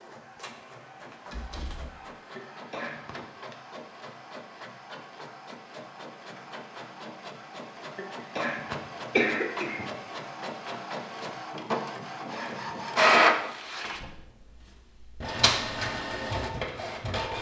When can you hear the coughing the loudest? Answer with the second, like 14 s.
9 s.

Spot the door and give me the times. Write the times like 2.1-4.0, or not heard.
1.3-1.9.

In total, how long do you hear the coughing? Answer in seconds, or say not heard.
4 s.